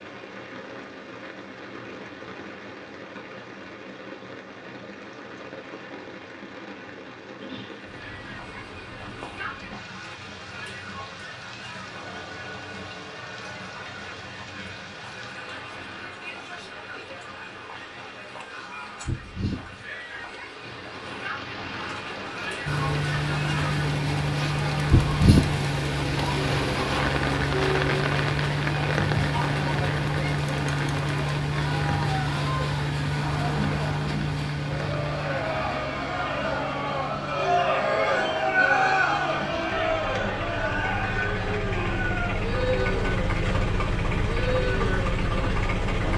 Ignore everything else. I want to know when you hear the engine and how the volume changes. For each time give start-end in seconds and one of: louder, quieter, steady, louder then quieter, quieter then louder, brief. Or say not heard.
22.6-46.1 quieter then louder.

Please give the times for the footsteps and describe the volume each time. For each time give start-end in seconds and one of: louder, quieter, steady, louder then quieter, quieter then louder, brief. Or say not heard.
not heard.